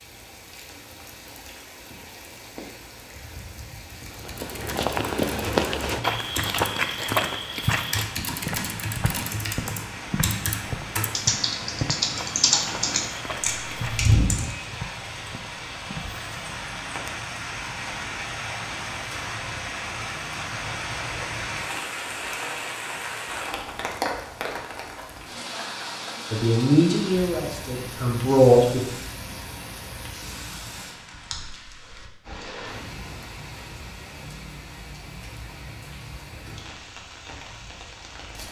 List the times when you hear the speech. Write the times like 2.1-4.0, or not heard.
26.3-28.8.